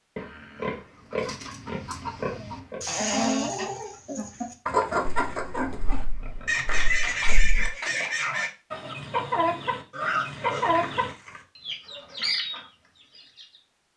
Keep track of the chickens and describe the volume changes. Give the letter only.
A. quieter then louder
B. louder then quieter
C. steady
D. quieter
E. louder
C.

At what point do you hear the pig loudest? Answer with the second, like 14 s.
10 s.